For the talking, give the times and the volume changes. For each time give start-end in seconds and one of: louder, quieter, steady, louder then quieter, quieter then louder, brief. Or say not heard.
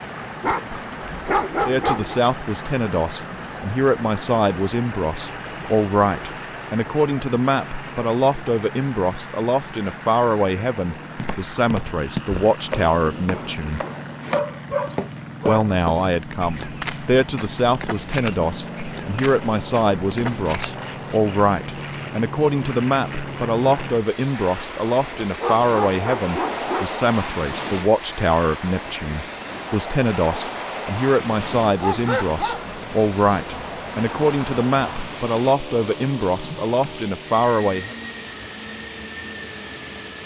1.6-13.8 steady
15.4-38.0 steady.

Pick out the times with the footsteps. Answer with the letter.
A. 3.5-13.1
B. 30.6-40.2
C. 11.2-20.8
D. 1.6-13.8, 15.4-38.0
C.